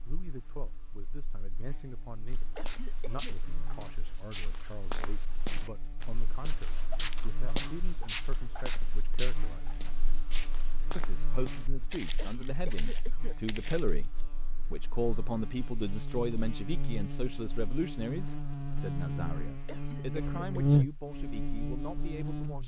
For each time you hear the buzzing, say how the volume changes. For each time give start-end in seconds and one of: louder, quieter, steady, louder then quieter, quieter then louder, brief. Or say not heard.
0.0-22.6 louder.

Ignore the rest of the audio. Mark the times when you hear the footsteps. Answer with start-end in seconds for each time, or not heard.
2.3-14.1.